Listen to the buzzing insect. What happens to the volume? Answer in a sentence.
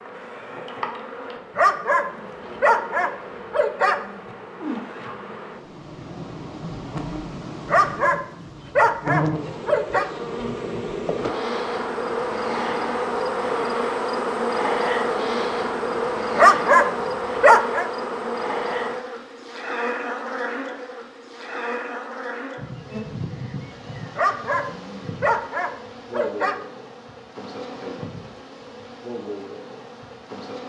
The volume of the buzzing insect goes up, then down.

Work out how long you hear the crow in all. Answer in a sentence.
The crow can't be heard in this clip.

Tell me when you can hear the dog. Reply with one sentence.
The dog can be heard from 1.6 to 4.2 s, from 7.7 to 10.1 s, from 16.4 to 17.9 s and from 24.1 to 26.6 s.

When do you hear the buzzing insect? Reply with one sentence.
You can hear the buzzing insect from 0.0 to 30.6 s.